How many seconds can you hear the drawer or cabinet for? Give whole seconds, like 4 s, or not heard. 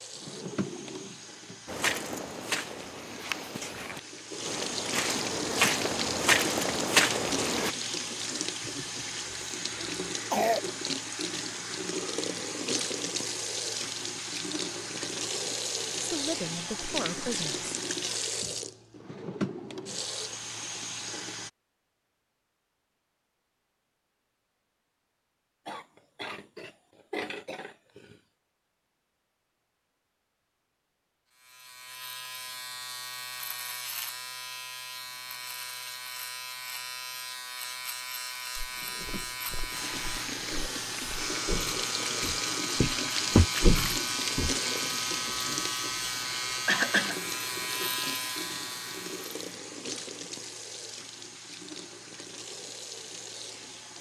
4 s.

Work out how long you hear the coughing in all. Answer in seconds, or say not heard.
4 s.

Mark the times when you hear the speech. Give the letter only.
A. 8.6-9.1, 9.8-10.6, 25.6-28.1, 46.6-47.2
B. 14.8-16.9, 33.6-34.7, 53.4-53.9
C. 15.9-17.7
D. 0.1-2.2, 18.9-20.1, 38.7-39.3
C.